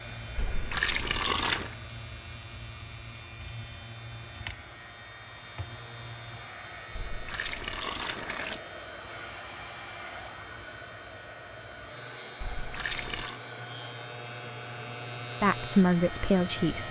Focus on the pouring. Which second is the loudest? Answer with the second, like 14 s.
1 s.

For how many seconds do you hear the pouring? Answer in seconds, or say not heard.
4 s.